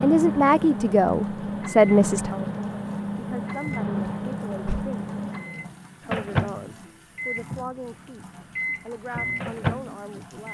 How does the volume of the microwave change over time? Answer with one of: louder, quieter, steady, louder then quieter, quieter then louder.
steady.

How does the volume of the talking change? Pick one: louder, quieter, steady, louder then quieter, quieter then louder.
quieter.